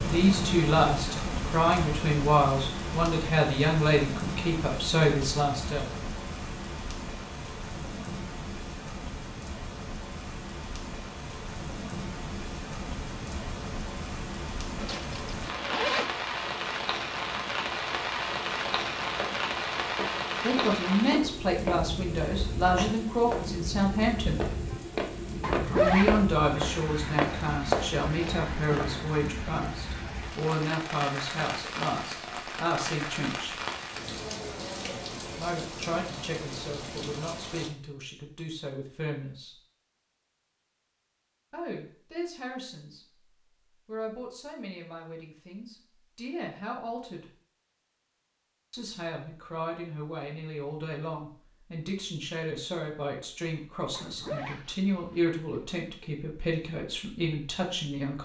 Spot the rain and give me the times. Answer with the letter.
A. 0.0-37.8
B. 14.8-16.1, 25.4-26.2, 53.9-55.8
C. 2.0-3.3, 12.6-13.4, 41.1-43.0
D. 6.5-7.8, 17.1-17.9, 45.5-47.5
A.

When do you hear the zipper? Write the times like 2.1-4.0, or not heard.
14.8-16.1, 25.4-26.2, 53.9-55.8.